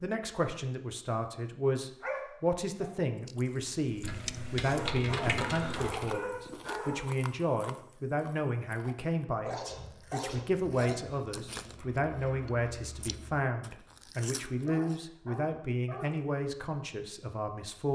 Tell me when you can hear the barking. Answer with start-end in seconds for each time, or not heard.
2.0-2.9, 4.7-7.0, 9.4-11.8, 14.4-16.2.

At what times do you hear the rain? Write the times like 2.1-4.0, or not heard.
not heard.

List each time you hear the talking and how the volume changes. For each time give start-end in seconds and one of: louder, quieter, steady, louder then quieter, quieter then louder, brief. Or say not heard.
0.0-17.9 steady.